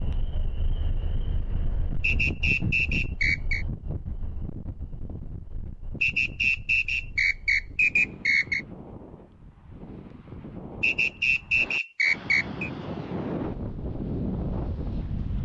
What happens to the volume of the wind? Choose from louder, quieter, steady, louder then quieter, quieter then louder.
quieter then louder.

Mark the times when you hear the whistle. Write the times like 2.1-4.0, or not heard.
2.0-3.6, 6.0-8.7, 10.8-12.7.